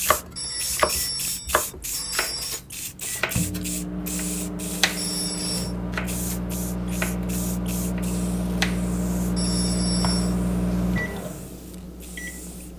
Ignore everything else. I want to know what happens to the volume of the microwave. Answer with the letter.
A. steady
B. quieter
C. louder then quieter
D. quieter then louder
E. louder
E.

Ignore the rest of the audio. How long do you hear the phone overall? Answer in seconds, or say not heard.
4 s.